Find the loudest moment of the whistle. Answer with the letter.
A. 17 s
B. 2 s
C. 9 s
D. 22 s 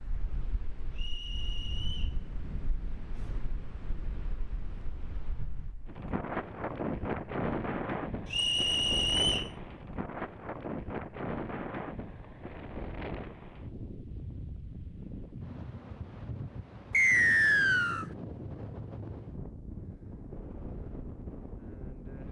A.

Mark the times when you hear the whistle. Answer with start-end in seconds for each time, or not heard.
0.9-2.1, 8.3-9.5, 16.9-18.1.